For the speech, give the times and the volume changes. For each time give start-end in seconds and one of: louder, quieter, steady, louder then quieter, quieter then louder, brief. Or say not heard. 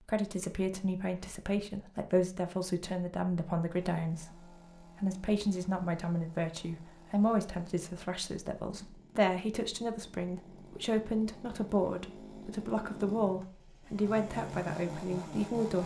0.0-15.8 steady.